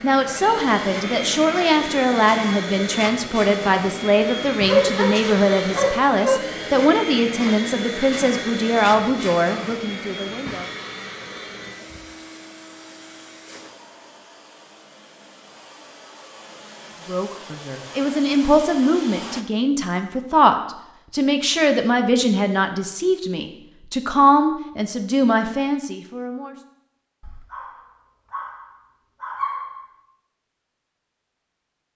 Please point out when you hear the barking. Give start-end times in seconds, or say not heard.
4.7-6.5, 27.2-29.9.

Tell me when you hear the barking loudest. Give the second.
5 s.